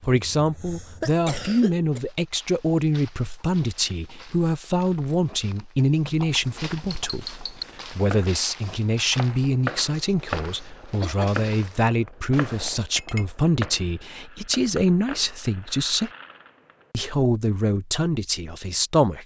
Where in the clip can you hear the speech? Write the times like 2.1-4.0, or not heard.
0.1-16.1, 16.9-19.2.